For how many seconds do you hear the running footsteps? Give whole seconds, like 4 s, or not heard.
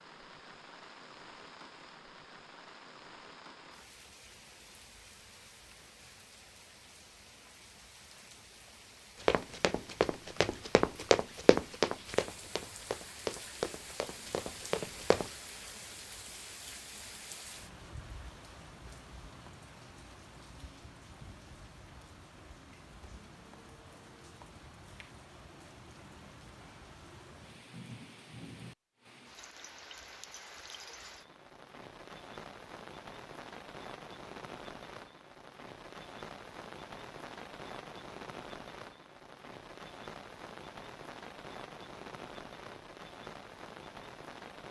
6 s.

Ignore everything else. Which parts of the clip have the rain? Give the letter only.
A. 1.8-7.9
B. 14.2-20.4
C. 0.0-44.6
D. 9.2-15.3
C.